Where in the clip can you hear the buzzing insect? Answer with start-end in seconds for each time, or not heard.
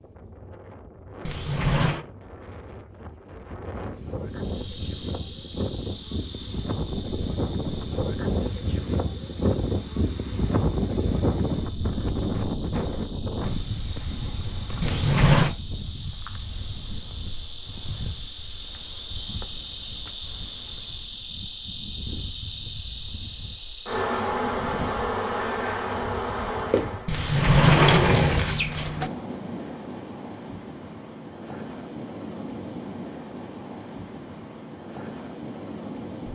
4.2-27.1.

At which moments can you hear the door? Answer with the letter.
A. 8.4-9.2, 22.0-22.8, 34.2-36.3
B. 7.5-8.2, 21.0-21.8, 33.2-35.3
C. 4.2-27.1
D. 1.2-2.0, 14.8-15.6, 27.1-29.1
D.